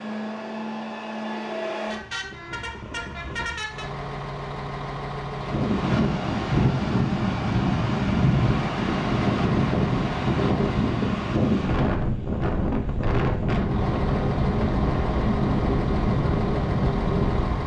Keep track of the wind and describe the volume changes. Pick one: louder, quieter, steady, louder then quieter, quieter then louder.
steady.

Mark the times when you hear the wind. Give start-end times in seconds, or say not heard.
5.3-17.6.